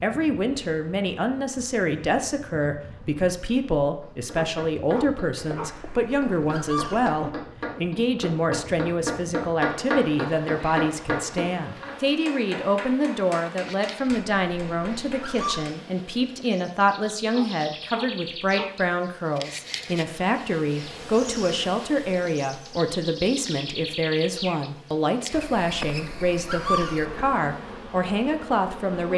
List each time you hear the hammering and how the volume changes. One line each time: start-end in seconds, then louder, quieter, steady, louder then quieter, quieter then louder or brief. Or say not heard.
4.0-15.7 louder then quieter.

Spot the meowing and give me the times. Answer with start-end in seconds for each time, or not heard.
5.3-7.2, 14.1-15.7, 25.3-27.3.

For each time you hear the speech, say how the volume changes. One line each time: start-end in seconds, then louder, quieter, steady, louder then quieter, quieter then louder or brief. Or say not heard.
0.0-29.1 steady.